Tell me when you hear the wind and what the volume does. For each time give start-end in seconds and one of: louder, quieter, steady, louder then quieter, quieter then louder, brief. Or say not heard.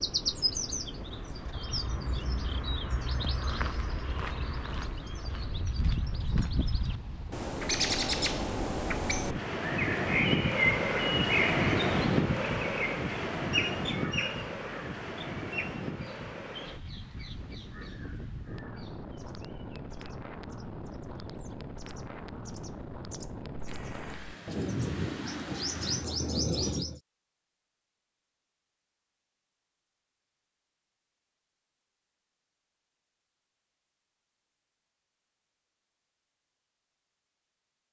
0.0-26.6 louder then quieter.